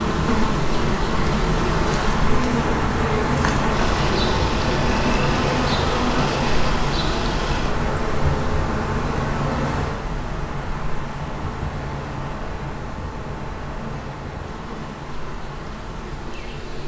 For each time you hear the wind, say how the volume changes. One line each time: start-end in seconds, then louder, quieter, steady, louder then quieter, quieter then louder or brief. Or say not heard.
0.0-16.8 quieter.